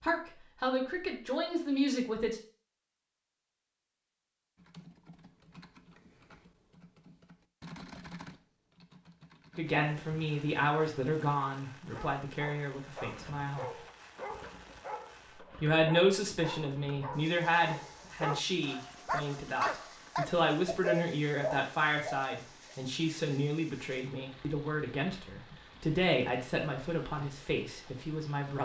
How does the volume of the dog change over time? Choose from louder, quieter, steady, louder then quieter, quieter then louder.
louder.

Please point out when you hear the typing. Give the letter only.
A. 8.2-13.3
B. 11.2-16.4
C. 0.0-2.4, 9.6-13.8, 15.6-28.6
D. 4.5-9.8
D.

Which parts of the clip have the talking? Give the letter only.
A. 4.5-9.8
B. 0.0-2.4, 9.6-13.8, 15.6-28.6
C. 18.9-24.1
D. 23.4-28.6
B.